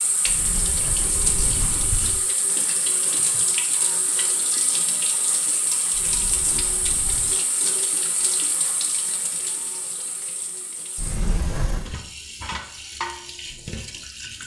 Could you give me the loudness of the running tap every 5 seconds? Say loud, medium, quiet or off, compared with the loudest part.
loud, loud, medium.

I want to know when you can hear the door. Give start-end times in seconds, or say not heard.
0.2-2.2, 5.9-7.3, 10.9-11.9.